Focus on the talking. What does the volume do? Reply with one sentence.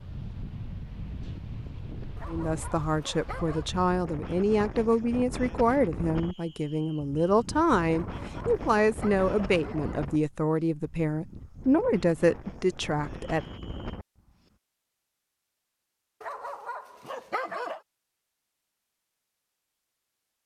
The volume of the talking stays about the same.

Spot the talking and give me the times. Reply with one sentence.
The talking can be heard from 2.2 to 13.4 s.